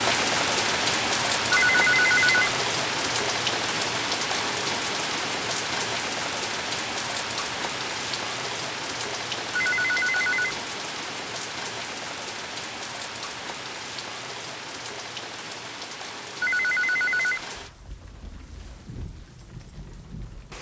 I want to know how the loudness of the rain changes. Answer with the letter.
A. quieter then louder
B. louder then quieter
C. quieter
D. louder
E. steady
C.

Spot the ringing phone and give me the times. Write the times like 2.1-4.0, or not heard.
1.5-2.5, 9.6-10.5, 16.4-17.4.